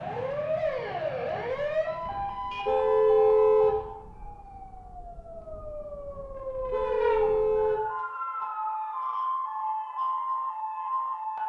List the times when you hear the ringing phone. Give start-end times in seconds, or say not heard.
not heard.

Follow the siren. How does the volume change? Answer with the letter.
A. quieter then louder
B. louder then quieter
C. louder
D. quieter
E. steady
A.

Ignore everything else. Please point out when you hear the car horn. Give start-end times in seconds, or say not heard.
2.6-3.8, 6.7-7.8.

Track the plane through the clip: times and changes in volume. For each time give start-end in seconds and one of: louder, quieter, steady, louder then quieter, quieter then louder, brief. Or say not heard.
not heard.